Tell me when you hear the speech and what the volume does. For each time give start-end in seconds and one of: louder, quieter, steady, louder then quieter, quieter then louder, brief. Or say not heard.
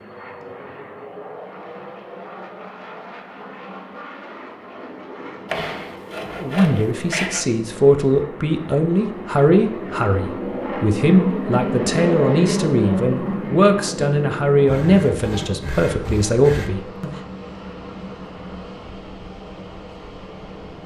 6.4-17.1 steady.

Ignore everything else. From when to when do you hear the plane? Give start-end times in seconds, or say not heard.
0.0-20.8.